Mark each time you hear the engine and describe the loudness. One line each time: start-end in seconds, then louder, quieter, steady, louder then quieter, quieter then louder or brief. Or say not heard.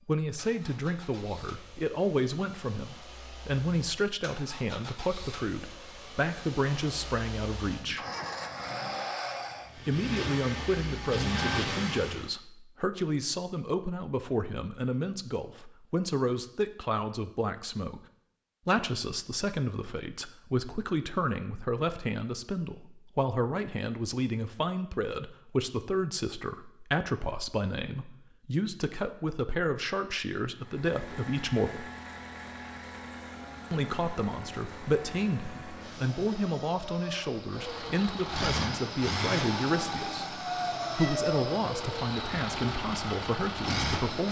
0.0-12.3 louder
30.6-44.2 louder.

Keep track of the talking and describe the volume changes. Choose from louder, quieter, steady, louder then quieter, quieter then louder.
steady.